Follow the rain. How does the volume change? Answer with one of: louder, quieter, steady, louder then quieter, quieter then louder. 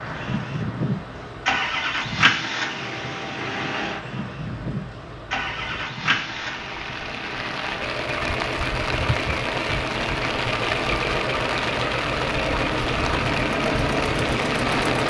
louder.